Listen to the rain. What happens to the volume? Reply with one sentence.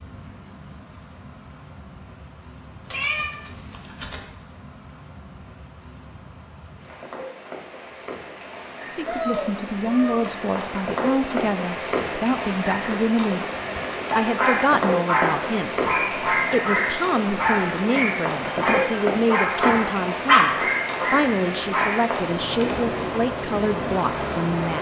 The loudness of the rain goes up.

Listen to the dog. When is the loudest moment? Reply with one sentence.
The volume of the dog peaks at 20 seconds.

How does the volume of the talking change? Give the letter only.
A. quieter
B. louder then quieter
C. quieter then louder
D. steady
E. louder
D.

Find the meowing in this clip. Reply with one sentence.
You can hear the meowing from 2.9 to 4.2 s, from 9.1 to 10.2 s and from 18.4 to 19.1 s.